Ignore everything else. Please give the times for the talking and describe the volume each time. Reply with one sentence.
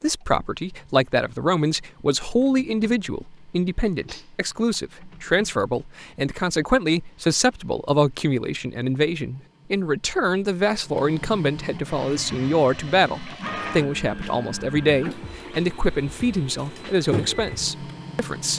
The talking can be heard from 0.0 to 18.5 s, at a steady volume.